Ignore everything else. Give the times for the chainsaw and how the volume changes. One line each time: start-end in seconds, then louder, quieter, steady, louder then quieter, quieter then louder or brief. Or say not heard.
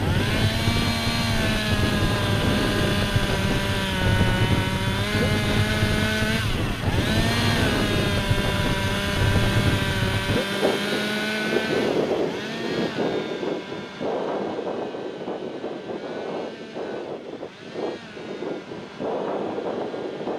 0.0-20.3 quieter.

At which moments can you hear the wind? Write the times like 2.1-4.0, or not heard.
0.0-20.3.